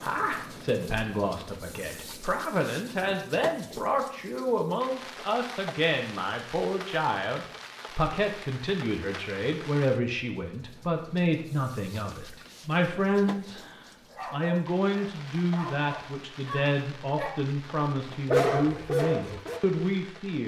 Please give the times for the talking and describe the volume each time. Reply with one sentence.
You can hear the talking from 0.0 to 20.4 s, at a steady volume.